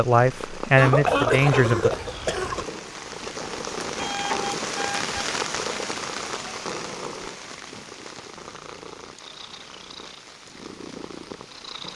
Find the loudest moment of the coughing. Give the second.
1 s.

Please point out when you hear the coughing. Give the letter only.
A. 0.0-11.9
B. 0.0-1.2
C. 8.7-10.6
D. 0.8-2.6
D.